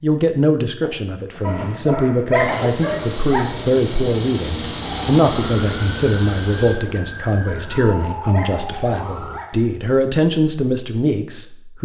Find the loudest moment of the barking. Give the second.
2 s.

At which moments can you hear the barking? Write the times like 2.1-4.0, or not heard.
1.4-3.5, 7.5-9.8.